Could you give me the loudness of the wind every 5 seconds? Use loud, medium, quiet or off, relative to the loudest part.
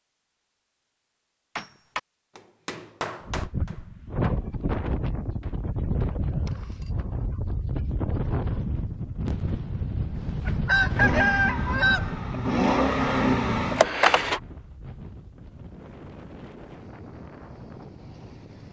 loud, loud, loud, quiet.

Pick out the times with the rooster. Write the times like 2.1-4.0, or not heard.
10.4-12.2.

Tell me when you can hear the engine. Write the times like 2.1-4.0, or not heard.
10.9-14.4.